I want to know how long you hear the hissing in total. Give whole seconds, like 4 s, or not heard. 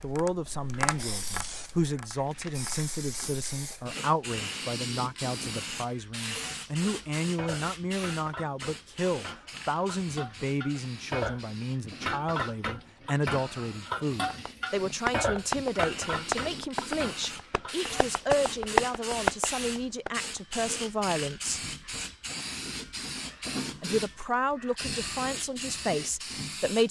27 s.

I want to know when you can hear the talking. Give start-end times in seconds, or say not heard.
0.0-21.6, 23.8-26.8.